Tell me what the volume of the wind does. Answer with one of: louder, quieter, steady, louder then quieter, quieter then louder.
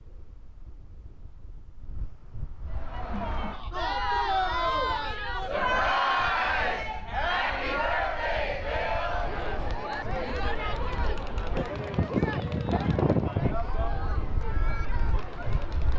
louder.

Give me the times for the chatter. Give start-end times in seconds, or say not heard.
2.6-15.9.